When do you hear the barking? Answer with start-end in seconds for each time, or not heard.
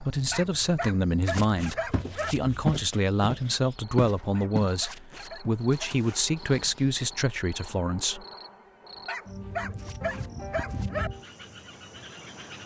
0.3-2.4, 4.3-6.0, 9.1-11.1.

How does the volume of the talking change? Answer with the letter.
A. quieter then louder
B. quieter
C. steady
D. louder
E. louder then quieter
C.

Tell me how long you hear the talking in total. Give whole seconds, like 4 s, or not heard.
8 s.